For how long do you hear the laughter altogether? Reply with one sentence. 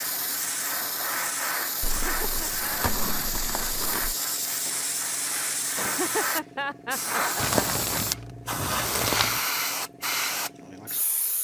The laughter can be heard for 3 seconds in total.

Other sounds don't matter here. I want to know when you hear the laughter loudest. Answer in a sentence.
The volume of the laughter peaks at 6 seconds.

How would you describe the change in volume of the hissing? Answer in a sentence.
The volume of the hissing stays about the same.